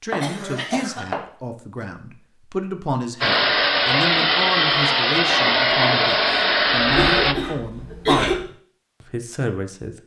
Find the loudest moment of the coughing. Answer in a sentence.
The loudest moment of the coughing is at 8 seconds.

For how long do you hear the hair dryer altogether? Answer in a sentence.
You can hear the hair dryer for 4 seconds altogether.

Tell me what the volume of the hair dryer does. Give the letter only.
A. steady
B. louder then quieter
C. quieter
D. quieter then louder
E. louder
A.